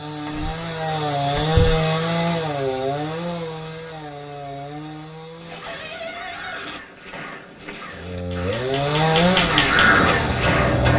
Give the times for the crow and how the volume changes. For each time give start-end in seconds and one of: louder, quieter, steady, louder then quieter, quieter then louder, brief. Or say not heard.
5.3-10.9 louder.